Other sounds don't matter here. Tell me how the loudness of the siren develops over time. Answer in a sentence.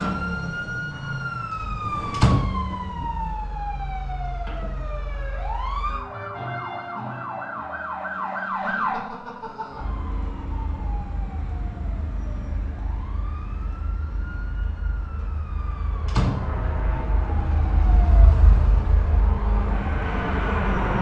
The loudness of the siren goes down, then up.